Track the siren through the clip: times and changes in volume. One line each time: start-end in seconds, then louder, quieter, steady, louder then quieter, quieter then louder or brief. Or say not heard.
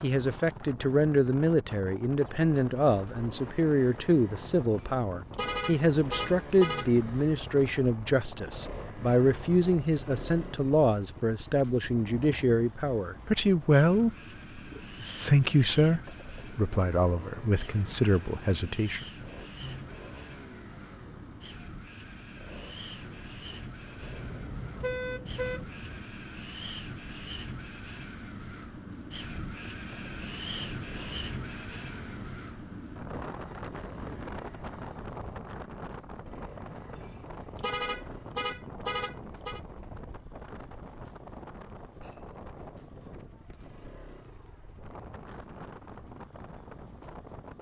not heard.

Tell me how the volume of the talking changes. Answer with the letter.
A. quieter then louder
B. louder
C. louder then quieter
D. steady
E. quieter
D.